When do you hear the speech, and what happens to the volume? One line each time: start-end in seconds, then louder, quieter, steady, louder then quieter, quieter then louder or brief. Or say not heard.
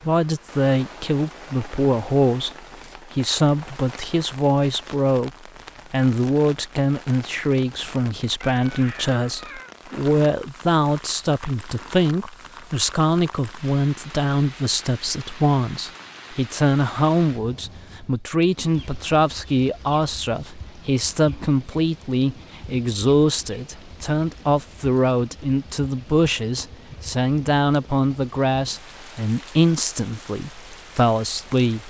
0.1-2.5 brief
3.1-5.3 brief
5.9-31.8 steady.